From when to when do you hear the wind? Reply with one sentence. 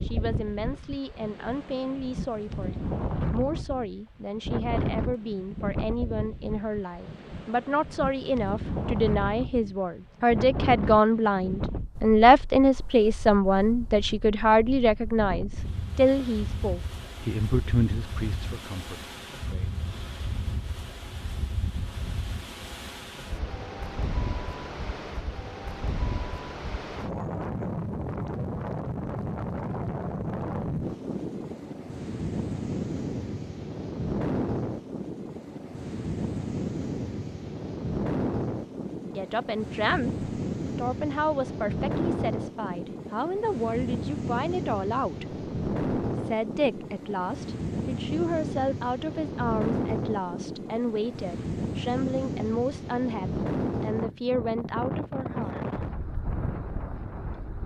The wind can be heard from 0.0 to 57.6 s.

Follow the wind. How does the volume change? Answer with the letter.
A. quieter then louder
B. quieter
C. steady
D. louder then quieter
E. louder
A.